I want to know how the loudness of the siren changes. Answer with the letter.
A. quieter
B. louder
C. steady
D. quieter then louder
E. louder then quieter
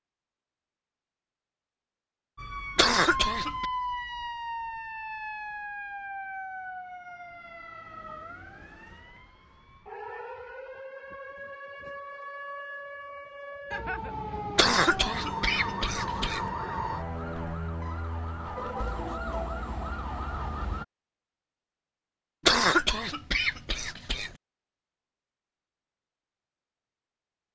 D.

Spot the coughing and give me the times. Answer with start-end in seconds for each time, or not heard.
2.8-3.6, 14.6-16.4, 22.4-24.4.